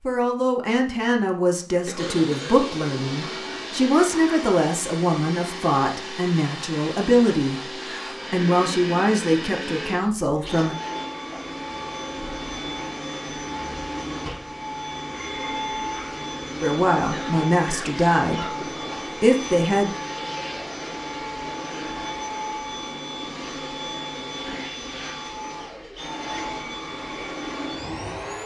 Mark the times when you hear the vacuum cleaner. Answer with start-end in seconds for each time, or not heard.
1.9-28.4.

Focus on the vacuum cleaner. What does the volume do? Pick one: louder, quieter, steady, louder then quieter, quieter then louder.
steady.